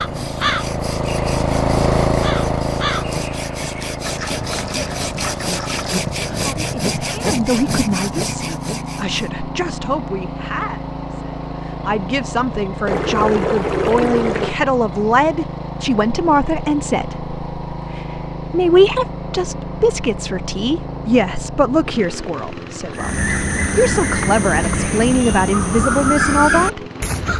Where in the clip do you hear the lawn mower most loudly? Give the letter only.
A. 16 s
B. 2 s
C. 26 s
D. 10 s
B.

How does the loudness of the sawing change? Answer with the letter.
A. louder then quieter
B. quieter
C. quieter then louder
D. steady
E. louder
E.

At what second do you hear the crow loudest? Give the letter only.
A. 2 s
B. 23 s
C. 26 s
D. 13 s
C.